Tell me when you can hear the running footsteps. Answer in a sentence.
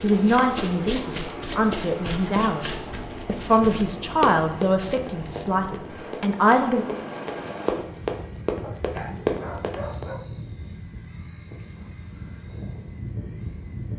You can hear the running footsteps from 0.0 to 10.1 s.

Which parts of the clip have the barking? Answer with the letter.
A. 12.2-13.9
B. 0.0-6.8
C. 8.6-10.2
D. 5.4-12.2
C.